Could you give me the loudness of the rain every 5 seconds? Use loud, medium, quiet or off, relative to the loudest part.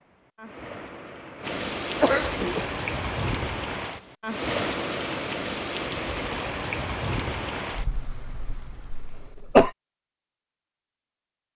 loud, loud, off.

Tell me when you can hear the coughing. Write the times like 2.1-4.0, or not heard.
2.0-2.8, 8.9-9.7.